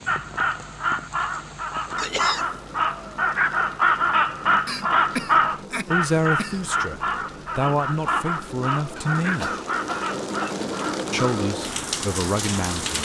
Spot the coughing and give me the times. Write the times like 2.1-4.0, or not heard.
1.9-2.5, 4.7-6.7, 8.9-10.7.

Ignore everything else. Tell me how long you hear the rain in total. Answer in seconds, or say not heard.
13 s.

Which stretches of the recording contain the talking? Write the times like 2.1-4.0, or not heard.
5.8-9.5, 11.1-13.0.